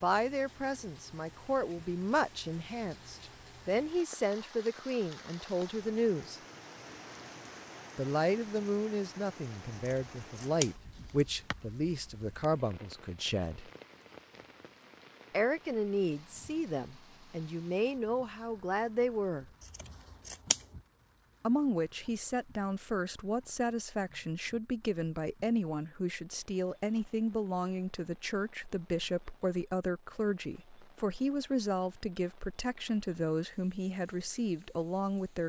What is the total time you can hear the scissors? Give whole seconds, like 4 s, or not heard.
3 s.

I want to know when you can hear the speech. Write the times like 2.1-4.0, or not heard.
0.0-6.4, 8.0-13.7, 15.3-19.5, 21.4-35.4.